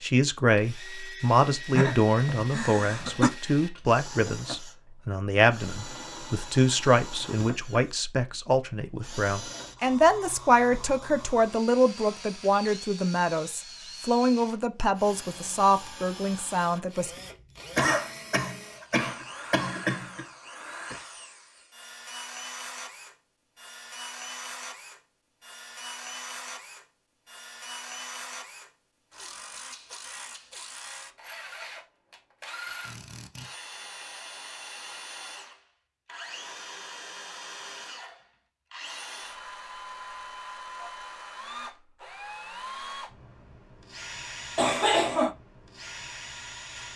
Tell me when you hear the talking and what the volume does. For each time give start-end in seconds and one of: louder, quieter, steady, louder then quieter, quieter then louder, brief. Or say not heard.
0.0-17.1 steady.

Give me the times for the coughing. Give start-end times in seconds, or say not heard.
1.8-3.3, 17.8-20.2, 44.5-45.4.